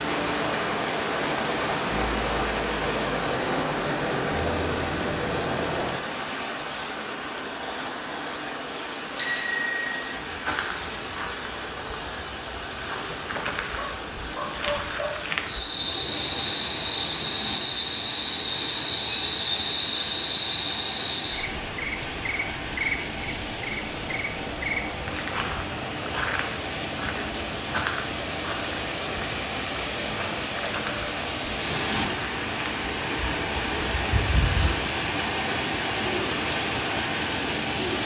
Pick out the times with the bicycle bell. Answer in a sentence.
The bicycle bell can be heard from 9.2 to 10.0 s.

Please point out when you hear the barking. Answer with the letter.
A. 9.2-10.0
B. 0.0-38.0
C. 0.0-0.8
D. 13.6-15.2
D.